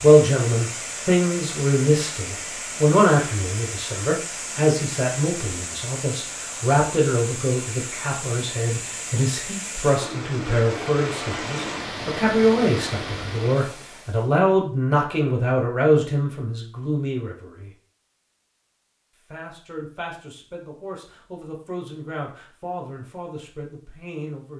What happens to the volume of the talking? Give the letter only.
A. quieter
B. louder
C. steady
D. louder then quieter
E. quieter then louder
A.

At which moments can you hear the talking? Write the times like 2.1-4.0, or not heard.
0.0-17.7, 19.3-24.5.